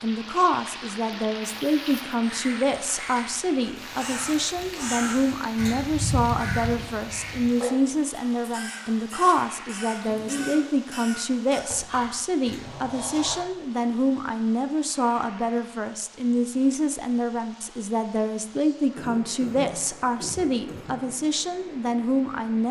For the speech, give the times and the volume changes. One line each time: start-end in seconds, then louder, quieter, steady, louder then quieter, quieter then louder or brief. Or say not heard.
0.0-22.6 steady.